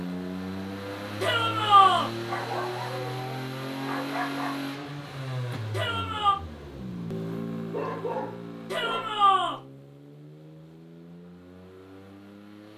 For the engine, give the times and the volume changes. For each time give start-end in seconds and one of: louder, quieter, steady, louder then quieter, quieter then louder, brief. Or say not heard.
0.0-12.7 quieter.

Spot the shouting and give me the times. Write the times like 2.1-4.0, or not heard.
1.2-2.1, 5.7-6.3, 8.7-9.6.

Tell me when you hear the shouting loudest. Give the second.
2 s.